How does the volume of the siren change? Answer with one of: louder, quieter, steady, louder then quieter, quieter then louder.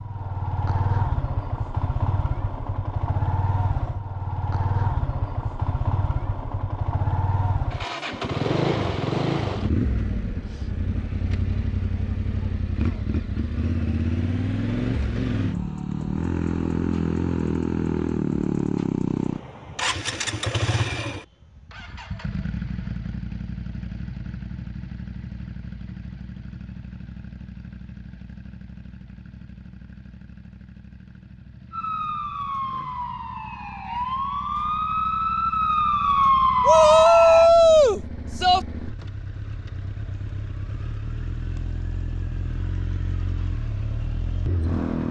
louder.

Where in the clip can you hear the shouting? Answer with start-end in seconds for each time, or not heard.
36.6-38.6.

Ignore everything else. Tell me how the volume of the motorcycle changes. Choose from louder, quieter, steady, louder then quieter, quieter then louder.
quieter then louder.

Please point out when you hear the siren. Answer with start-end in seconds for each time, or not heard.
31.7-37.5.